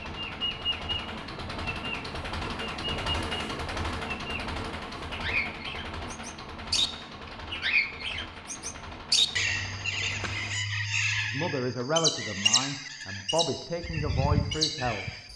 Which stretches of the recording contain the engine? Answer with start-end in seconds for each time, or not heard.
0.0-10.6.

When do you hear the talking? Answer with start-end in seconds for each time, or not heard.
11.2-15.1.